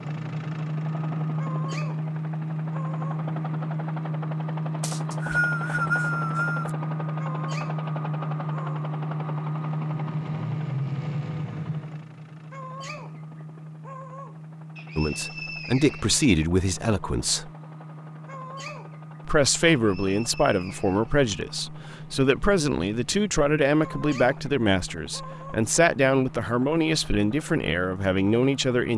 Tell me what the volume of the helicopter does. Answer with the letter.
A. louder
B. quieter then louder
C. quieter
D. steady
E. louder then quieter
C.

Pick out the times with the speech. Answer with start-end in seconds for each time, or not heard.
14.9-17.5, 19.2-28.9.